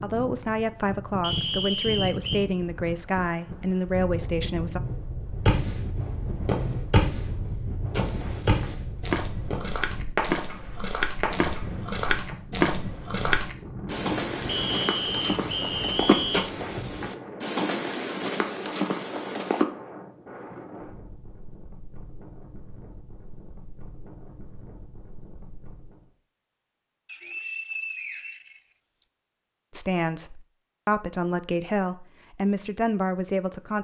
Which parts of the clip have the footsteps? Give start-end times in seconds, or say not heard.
7.9-19.6.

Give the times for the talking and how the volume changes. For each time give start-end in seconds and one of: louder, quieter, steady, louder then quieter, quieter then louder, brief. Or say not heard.
0.0-4.8 steady
29.7-33.7 louder.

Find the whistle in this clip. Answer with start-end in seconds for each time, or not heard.
1.2-2.5, 14.4-16.5, 27.1-29.1.